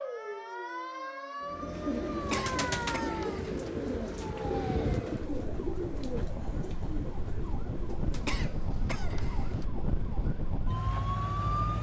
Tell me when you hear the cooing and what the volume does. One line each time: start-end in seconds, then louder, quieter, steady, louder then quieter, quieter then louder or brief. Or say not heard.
1.4-8.4 quieter.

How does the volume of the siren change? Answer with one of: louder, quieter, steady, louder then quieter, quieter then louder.
steady.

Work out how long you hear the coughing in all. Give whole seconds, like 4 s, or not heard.
3 s.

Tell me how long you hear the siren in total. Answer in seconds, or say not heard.
12 s.